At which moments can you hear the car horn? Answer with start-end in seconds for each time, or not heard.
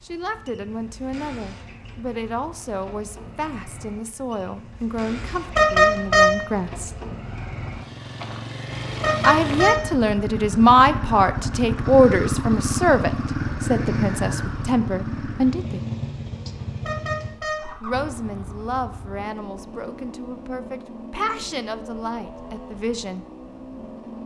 5.2-6.3, 8.9-9.8, 16.6-17.6.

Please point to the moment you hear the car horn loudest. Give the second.
6 s.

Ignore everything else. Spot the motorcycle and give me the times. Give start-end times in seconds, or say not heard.
0.0-24.2.